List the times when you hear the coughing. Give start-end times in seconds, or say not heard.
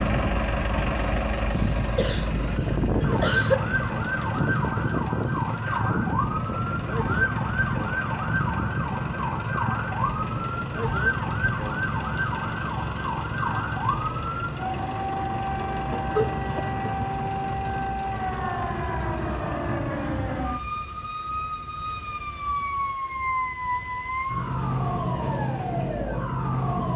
1.6-2.3, 3.0-3.5, 15.9-17.1.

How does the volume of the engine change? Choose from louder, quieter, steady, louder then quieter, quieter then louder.
quieter.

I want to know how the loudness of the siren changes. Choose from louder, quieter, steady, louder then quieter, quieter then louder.
steady.